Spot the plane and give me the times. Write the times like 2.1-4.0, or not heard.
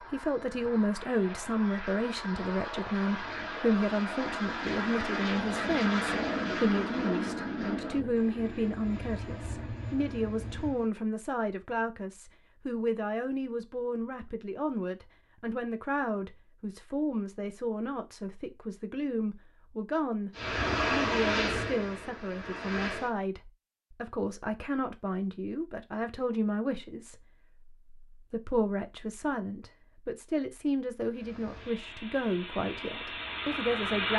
0.0-10.9, 20.4-23.1, 31.0-34.1.